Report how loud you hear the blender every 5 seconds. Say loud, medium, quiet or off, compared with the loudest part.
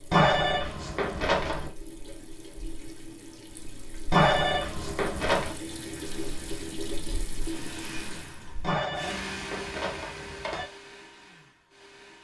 off, loud, medium.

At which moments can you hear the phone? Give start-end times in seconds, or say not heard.
0.1-1.7, 4.1-5.5, 8.6-10.7.